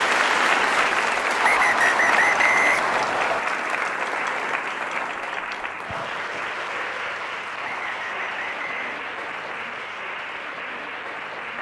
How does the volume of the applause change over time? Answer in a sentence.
The loudness of the applause goes down.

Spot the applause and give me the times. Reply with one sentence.
The applause can be heard from 0.0 to 11.5 s.